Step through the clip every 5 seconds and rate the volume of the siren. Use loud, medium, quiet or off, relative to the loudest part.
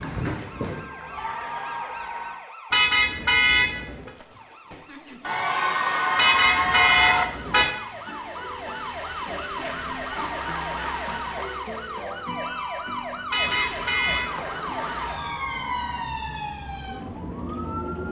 medium, loud, loud, loud.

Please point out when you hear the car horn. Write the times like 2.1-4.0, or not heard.
2.7-4.1, 6.2-7.7, 13.3-14.2.